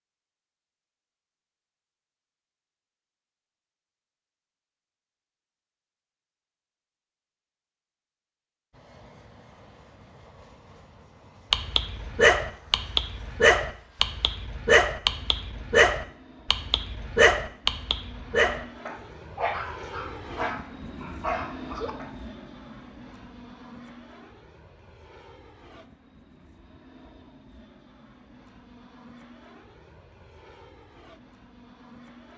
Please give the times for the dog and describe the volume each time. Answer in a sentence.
The dog can be heard from 11.5 to 22.1 s, getting quieter.